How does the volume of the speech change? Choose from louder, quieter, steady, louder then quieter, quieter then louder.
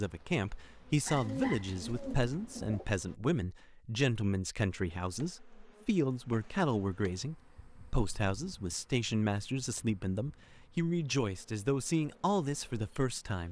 steady.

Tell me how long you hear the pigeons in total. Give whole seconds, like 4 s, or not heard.
2 s.